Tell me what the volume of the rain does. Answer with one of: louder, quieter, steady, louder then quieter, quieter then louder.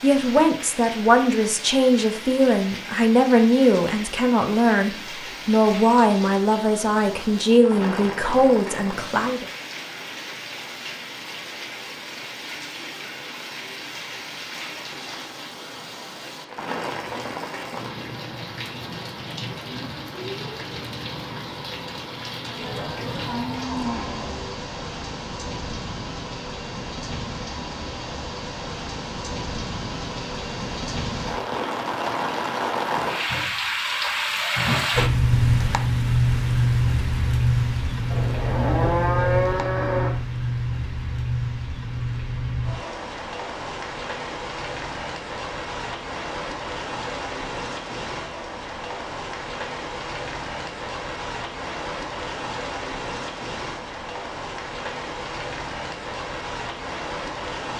louder then quieter.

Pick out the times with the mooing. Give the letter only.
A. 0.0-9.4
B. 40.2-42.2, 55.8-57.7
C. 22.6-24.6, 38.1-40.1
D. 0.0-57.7
C.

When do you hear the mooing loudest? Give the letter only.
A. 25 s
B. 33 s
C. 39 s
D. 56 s
C.